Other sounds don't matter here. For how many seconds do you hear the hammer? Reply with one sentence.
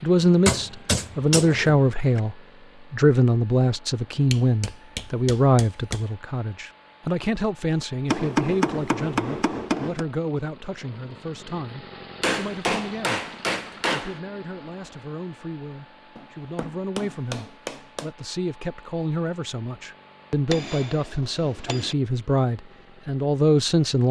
You can hear the hammer for 11 seconds altogether.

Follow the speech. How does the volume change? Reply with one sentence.
The loudness of the speech goes down, then up.